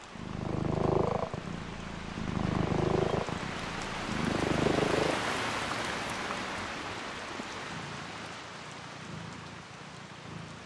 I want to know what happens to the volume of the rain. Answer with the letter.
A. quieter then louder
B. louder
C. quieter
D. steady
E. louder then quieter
E.